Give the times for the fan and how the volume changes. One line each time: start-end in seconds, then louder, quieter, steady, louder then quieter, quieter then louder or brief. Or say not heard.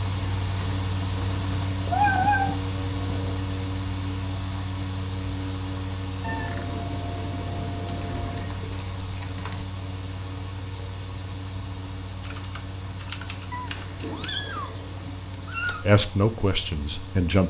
0.0-17.4 quieter.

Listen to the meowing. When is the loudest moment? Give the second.
2 s.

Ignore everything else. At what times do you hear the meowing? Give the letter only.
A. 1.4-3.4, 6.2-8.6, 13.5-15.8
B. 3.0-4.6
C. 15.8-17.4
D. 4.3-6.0
A.